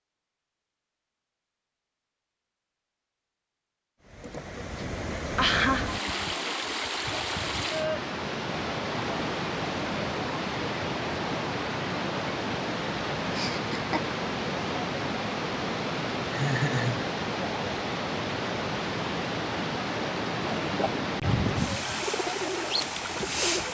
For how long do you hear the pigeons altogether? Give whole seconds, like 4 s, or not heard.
3 s.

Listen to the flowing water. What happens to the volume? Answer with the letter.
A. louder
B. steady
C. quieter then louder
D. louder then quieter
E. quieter
B.